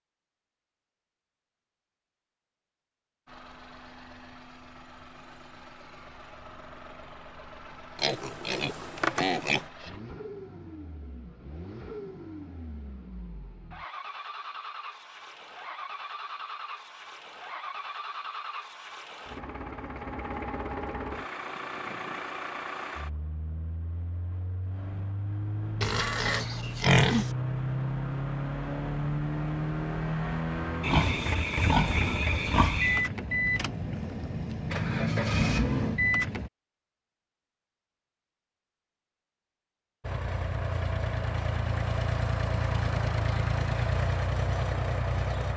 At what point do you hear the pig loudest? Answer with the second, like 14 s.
27 s.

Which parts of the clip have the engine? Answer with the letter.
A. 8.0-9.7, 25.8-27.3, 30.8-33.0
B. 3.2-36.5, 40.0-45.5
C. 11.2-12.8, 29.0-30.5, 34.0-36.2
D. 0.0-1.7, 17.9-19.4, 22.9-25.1
B.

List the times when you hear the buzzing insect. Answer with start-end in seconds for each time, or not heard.
not heard.